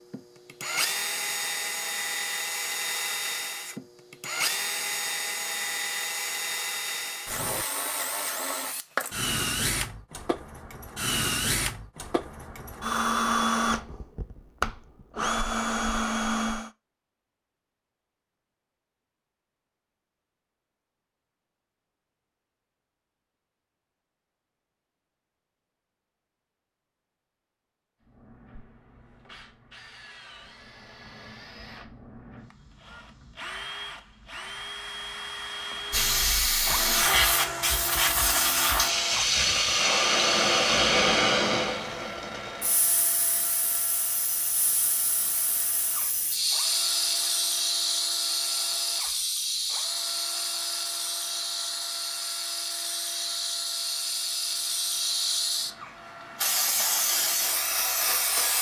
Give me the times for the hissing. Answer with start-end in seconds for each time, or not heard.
35.9-58.5.